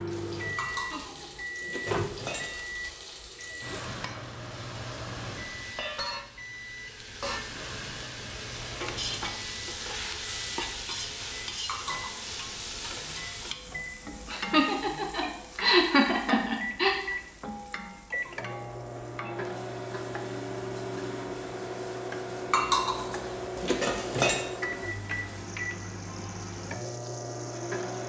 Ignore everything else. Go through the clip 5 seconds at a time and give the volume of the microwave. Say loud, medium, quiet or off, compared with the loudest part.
loud, medium, medium, loud, loud, loud.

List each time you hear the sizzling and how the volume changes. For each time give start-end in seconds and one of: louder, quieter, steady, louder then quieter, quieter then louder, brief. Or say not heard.
0.0-28.0 louder then quieter.